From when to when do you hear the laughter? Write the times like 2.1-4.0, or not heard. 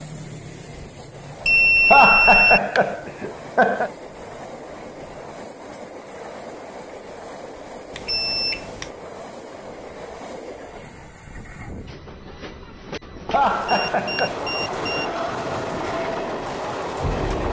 1.9-3.9, 13.3-14.4.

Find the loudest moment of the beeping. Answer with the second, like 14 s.
2 s.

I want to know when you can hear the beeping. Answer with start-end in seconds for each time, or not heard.
1.4-2.6, 8.0-8.9, 13.7-15.1.